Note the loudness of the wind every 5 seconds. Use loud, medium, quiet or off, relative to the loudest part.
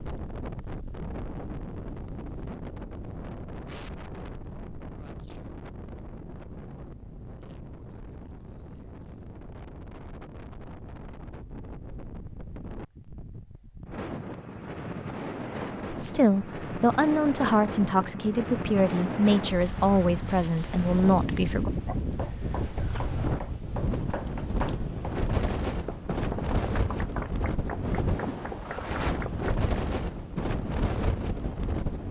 medium, quiet, medium, loud, loud, loud, loud.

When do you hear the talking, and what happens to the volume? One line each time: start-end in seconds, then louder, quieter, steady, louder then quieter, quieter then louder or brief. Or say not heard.
15.9-21.7 steady.